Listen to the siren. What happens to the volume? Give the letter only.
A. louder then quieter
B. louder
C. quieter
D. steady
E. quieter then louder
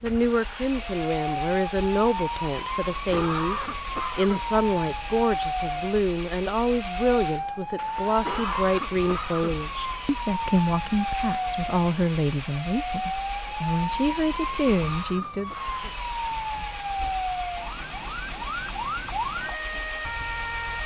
D.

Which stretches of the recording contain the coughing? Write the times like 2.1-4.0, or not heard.
3.1-4.5, 8.2-9.7, 14.6-16.1.